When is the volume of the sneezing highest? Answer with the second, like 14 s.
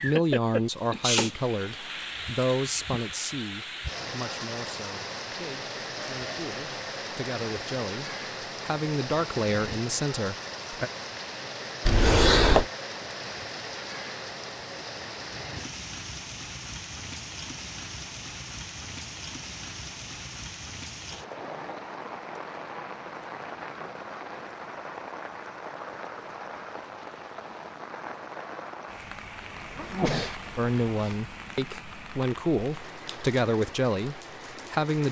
12 s.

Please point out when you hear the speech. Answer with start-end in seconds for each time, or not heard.
0.0-10.9, 30.6-35.0.